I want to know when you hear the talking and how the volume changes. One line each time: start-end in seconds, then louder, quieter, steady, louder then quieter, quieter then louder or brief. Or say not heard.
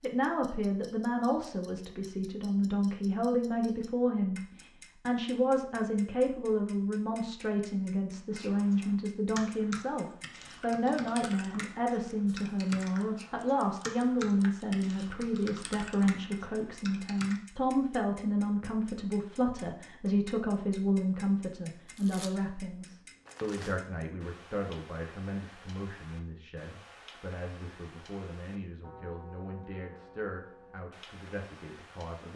0.0-32.3 quieter.